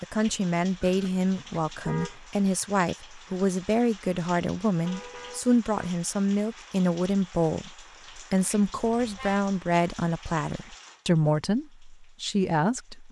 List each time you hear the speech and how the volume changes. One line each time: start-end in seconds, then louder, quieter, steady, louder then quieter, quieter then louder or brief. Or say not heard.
0.0-13.0 steady.